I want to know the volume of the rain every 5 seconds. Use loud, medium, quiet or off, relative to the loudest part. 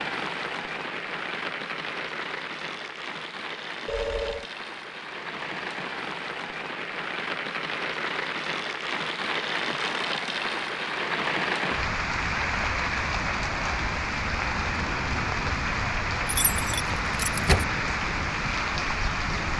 medium, loud, loud, loud.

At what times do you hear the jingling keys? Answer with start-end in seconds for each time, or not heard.
16.2-17.6.